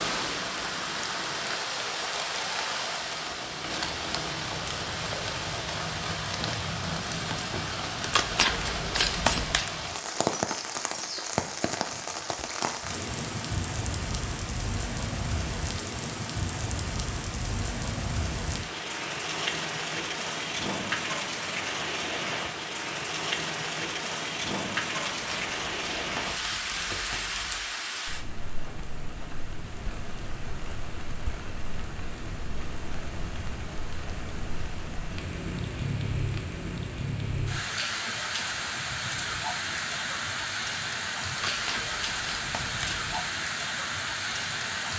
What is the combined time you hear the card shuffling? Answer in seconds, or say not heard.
6 s.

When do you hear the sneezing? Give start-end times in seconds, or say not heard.
not heard.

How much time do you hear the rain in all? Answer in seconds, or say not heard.
45 s.